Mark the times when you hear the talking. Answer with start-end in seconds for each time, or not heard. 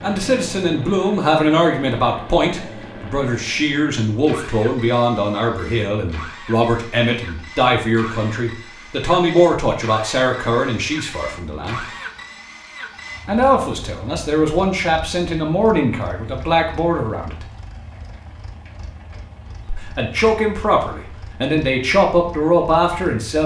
0.0-11.8, 13.2-17.4, 19.6-23.4.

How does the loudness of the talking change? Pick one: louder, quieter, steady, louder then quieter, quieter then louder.
steady.